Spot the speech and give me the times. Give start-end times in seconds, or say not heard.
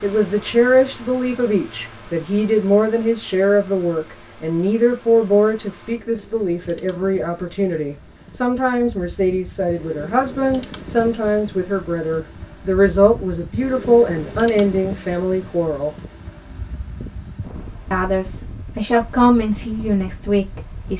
0.0-15.9, 17.9-20.9.